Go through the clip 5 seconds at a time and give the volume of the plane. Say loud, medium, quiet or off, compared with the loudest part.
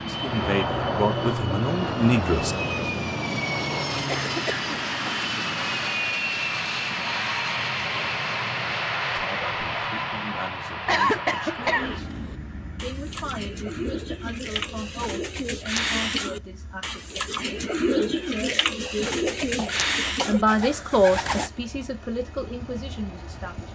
loud, loud, medium, quiet, quiet.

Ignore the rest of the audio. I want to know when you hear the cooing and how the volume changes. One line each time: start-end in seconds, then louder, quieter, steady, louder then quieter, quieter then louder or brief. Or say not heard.
11.6-21.5 louder.